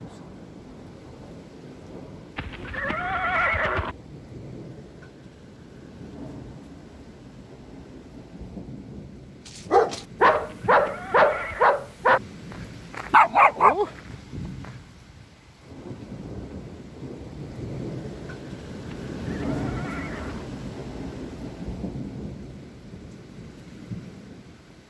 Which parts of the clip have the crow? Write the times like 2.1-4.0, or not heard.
not heard.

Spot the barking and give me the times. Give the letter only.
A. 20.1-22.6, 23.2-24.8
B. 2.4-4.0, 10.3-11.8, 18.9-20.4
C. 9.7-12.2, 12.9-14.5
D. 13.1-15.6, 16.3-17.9
C.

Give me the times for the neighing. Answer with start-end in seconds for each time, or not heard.
2.4-4.0, 10.3-11.8, 18.9-20.4.